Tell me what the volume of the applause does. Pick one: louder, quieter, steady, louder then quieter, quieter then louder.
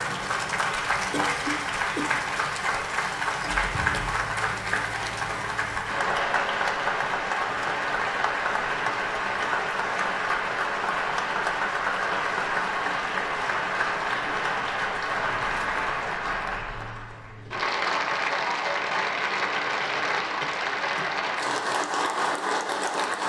steady.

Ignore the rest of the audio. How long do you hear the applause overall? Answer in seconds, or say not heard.
23 s.